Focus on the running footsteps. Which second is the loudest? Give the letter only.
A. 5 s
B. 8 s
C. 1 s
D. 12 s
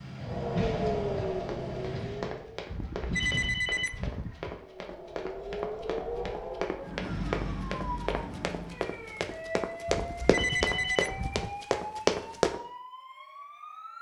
D.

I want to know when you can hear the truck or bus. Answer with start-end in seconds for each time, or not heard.
0.0-3.5, 7.0-9.6.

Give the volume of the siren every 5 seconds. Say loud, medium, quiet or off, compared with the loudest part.
loud, loud, medium.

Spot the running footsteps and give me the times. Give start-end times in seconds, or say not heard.
1.4-12.6.